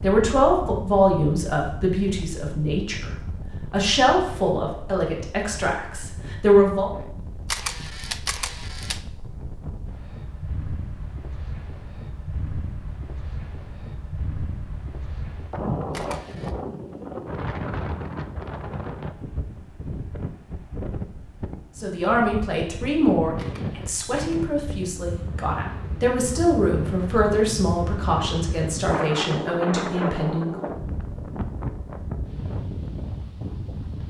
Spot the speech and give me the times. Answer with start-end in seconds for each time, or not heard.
0.0-3.1, 3.7-6.9, 21.8-30.7.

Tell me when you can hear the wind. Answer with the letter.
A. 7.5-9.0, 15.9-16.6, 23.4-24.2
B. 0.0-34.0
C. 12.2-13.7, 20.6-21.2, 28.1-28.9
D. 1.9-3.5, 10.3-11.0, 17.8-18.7
B.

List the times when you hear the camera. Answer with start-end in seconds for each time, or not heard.
7.5-9.0, 15.9-16.6, 23.4-24.2.